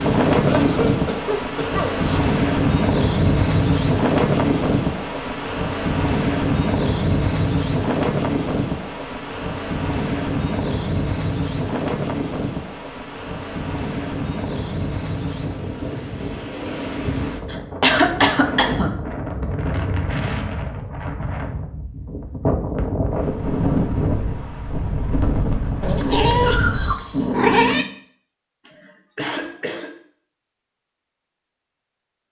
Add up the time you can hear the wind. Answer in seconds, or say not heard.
27 s.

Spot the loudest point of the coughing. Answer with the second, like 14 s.
18 s.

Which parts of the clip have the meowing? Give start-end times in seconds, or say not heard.
25.8-27.9.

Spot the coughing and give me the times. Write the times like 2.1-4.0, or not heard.
0.2-2.2, 17.5-18.9, 28.6-29.9.